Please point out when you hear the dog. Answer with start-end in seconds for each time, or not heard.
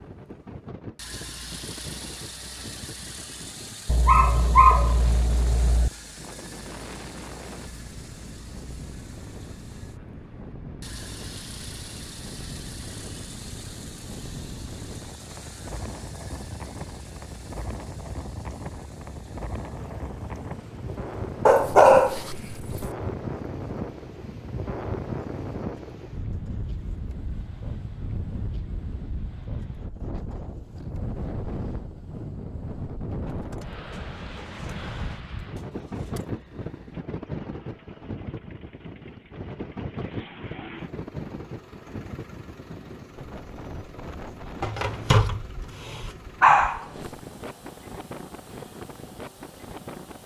3.9-5.9, 21.4-22.9, 44.6-46.9.